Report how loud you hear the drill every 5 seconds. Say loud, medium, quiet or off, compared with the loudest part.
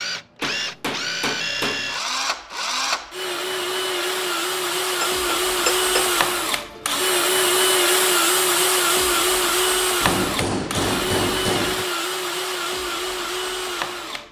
medium, loud, medium.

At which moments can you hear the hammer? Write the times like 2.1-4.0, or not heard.
0.4-1.9, 5.0-6.1, 10.0-11.8.